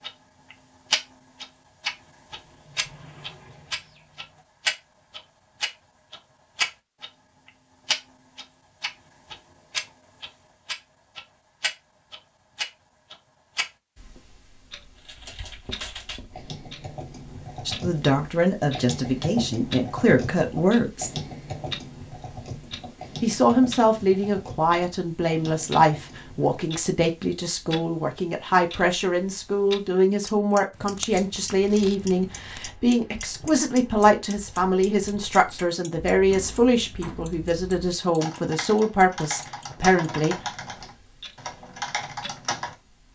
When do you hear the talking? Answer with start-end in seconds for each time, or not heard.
17.6-21.1, 23.2-40.4.